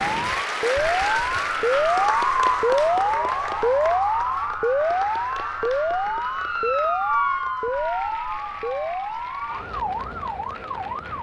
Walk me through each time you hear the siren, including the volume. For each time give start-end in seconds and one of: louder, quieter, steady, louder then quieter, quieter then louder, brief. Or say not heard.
0.0-11.1 quieter.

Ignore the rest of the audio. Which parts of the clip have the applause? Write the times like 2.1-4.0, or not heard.
0.0-11.1.